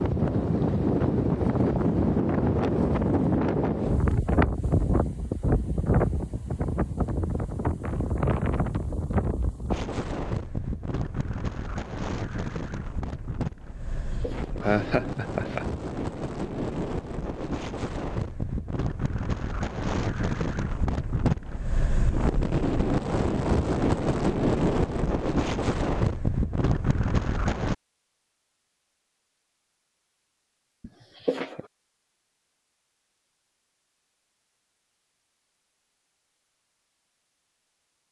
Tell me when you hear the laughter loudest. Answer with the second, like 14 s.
15 s.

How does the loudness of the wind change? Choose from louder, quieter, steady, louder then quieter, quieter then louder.
quieter then louder.